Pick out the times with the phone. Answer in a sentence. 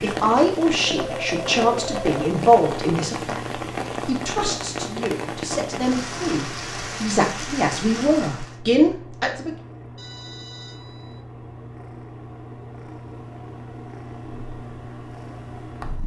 The phone can be heard from 0.8 to 2.2 s and from 9.9 to 11.2 s.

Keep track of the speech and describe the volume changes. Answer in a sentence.
The volume of the speech goes down, then up.